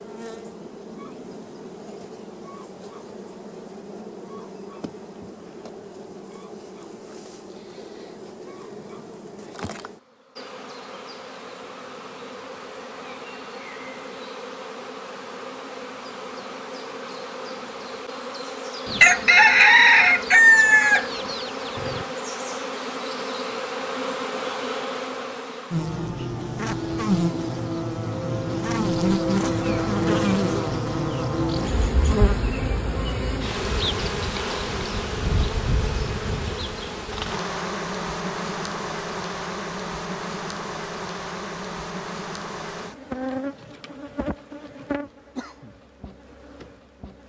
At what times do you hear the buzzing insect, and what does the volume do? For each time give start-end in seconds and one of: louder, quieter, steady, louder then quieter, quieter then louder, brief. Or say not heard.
0.0-47.2 louder then quieter.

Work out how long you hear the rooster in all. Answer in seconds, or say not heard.
3 s.